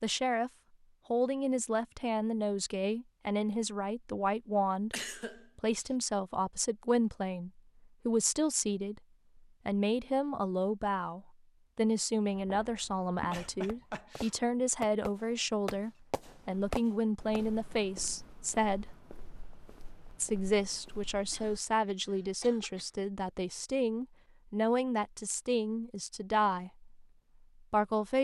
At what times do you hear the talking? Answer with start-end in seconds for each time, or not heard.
0.0-0.5, 1.1-5.0, 5.5-18.9, 20.1-26.9, 27.7-28.1.